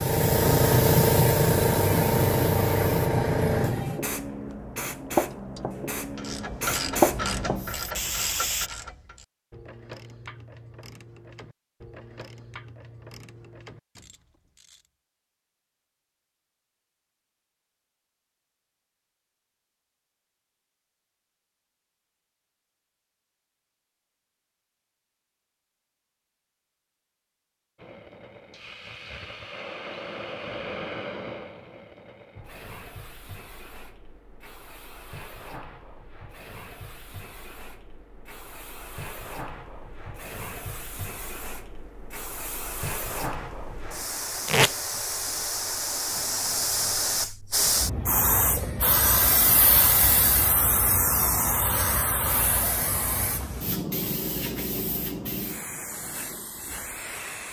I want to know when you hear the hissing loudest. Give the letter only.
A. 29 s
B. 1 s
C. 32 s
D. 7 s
B.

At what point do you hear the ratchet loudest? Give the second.
7 s.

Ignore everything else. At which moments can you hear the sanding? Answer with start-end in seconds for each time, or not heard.
not heard.